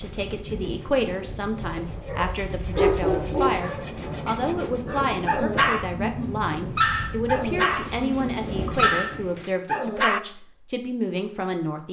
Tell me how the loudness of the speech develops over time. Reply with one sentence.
The loudness of the speech stays about the same.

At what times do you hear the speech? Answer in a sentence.
You can hear the speech from 0.0 to 11.8 s.